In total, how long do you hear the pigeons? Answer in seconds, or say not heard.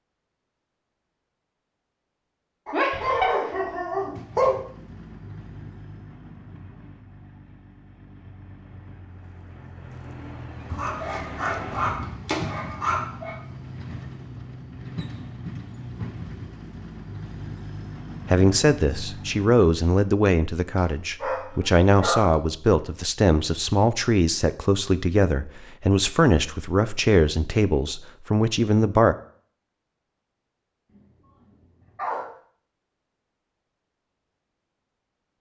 not heard.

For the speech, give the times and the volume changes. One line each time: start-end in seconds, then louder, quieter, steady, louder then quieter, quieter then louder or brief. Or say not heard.
18.2-29.1 steady.